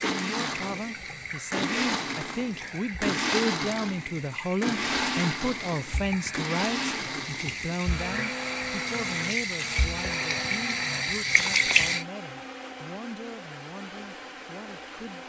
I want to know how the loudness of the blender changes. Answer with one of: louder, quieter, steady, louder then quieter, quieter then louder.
quieter.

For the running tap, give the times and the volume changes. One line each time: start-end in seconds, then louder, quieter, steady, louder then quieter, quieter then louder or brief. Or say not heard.
0.0-12.1 louder.